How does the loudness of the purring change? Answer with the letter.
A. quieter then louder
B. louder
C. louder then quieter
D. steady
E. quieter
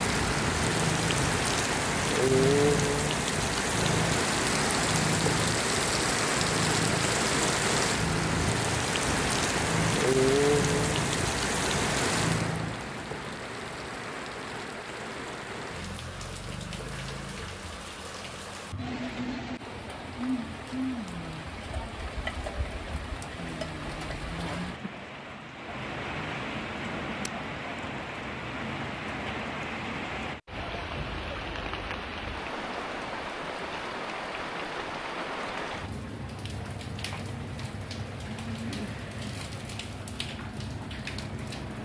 D.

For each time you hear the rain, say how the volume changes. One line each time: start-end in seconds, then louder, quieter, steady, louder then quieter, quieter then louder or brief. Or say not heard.
0.0-41.7 quieter.